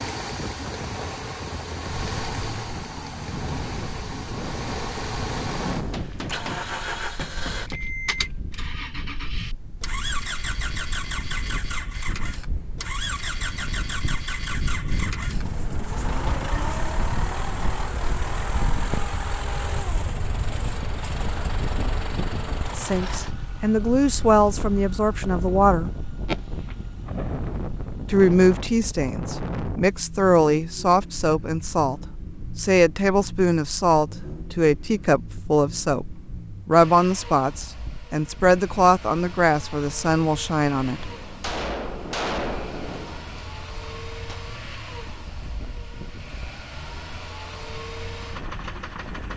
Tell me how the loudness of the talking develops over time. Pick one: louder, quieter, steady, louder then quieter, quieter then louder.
steady.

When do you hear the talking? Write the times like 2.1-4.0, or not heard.
22.8-25.9, 28.1-41.0.